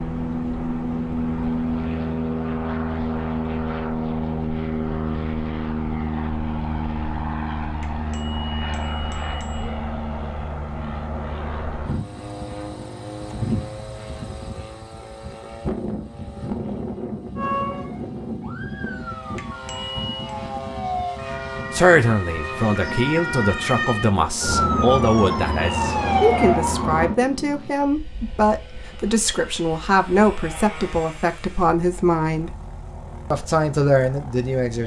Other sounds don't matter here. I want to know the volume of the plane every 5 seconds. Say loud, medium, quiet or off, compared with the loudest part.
loud, loud, medium, medium, medium, quiet, quiet.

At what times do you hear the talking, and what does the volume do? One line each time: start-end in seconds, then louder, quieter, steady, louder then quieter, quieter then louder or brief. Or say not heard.
21.7-32.5 steady
33.3-34.8 brief.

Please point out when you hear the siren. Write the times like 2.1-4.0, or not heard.
17.4-27.1.